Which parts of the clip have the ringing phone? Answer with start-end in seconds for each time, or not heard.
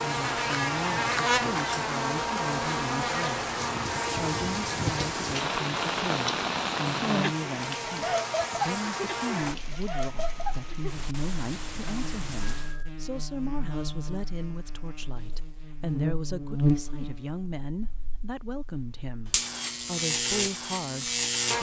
12.4-12.9.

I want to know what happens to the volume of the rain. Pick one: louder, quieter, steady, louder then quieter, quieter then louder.
louder then quieter.